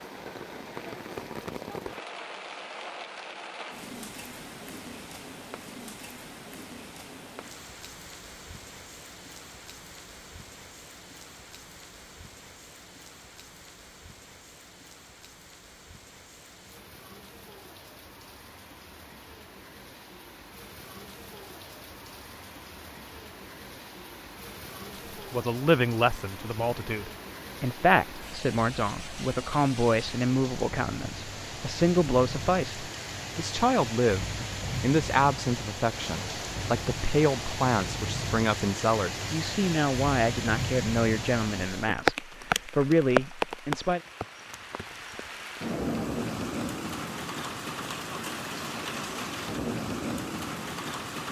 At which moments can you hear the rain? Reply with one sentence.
The rain can be heard from 0.0 to 51.2 s.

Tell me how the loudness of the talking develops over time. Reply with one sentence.
The volume of the talking stays about the same.